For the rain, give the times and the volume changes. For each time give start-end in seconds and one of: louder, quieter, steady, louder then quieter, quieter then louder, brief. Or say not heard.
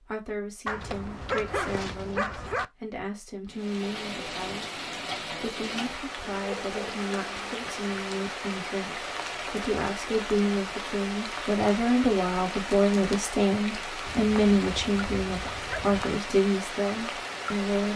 3.5-17.9 steady.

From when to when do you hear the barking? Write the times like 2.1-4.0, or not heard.
0.7-2.6, 6.2-7.6, 14.1-16.1.